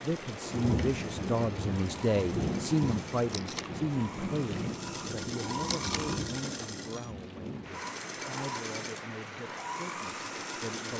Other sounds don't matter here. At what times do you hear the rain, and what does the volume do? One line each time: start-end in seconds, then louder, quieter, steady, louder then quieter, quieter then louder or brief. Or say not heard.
0.0-10.9 quieter.